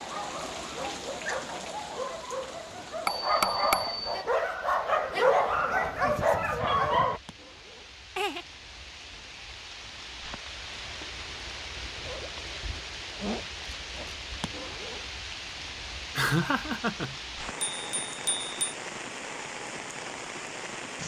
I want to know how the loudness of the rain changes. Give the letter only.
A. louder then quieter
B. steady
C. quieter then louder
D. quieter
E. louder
C.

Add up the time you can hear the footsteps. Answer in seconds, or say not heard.
not heard.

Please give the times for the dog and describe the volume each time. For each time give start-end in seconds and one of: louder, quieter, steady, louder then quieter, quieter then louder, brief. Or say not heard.
0.0-7.2 louder.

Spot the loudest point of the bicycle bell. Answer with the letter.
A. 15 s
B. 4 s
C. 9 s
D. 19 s
B.